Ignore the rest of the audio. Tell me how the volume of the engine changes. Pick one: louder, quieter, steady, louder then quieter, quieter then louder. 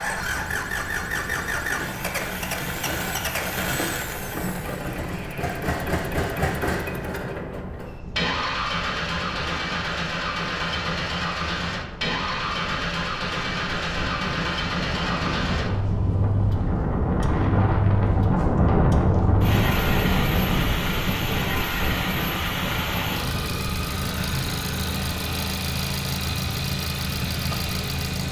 steady.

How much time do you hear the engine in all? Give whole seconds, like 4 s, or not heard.
28 s.